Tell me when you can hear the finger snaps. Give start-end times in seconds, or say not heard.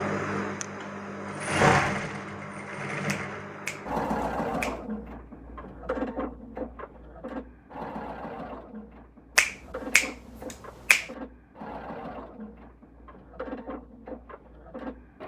3.0-4.8, 9.3-11.1.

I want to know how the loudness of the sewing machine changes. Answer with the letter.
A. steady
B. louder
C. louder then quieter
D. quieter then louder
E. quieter
E.